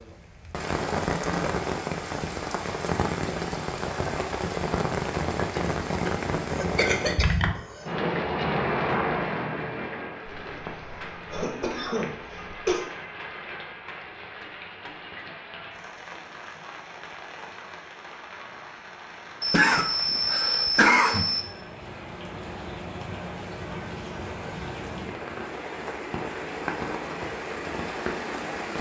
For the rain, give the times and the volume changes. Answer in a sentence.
The rain can be heard from 0.0 to 28.7 s, getting quieter then louder.